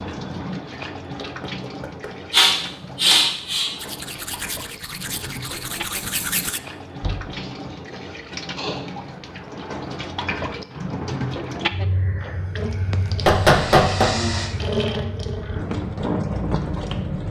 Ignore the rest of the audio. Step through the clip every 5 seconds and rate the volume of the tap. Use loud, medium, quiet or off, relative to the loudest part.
medium, medium, loud, loud.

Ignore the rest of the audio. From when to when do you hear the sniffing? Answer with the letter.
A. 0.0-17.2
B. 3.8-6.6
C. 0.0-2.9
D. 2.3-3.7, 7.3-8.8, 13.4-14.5
D.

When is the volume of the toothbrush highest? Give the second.
6 s.